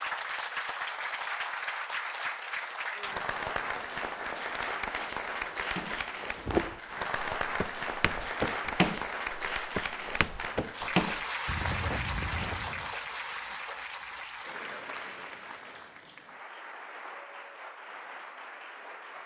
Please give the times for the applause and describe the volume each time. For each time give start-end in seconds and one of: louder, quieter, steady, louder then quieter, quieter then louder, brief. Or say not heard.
0.0-19.2 quieter.